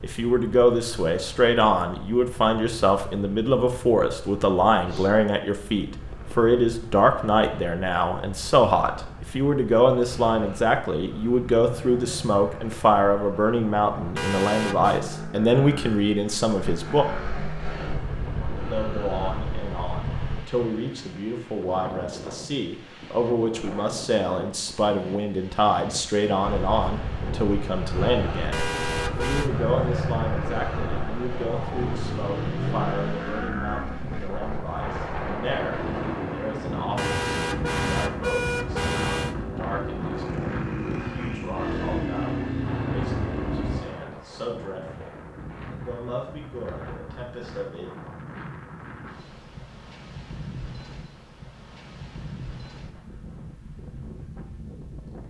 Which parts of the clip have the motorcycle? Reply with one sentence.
You can hear the motorcycle from 0.0 to 20.4 s and from 26.4 to 43.9 s.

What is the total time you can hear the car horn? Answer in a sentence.
The car horn can be heard for 4 seconds in total.